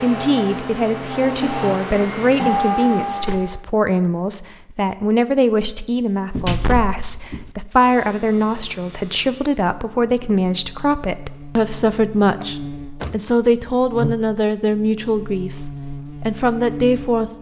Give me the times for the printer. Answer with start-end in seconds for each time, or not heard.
0.0-3.6.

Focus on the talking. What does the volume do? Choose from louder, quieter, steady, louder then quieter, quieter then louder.
steady.